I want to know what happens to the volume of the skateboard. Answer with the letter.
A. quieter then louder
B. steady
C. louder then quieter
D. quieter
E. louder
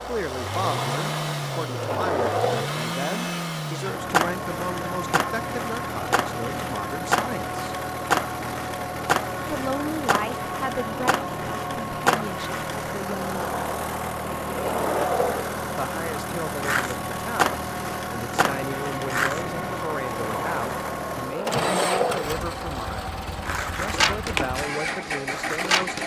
B.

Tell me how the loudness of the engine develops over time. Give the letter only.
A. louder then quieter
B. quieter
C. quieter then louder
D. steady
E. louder
D.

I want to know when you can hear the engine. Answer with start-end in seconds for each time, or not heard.
0.0-26.0.